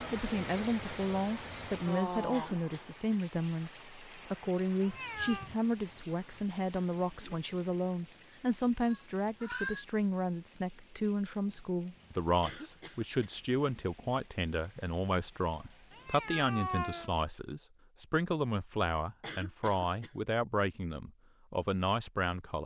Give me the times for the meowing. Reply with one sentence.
The meowing can be heard from 4.8 to 5.5 s, from 7.9 to 9.8 s and from 15.9 to 17.1 s.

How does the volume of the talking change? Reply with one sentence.
The loudness of the talking stays about the same.